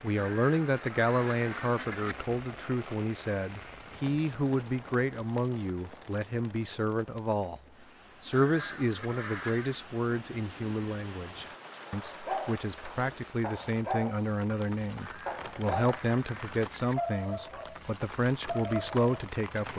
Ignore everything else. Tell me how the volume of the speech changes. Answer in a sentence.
The loudness of the speech stays about the same.